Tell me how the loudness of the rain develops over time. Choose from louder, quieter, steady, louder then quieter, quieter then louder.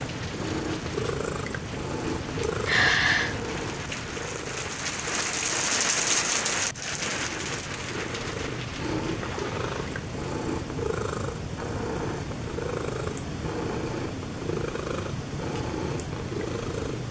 louder then quieter.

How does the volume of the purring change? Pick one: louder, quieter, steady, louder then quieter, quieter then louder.
quieter then louder.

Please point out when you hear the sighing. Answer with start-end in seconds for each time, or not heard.
2.6-3.4.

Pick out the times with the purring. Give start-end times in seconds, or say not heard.
0.0-17.0.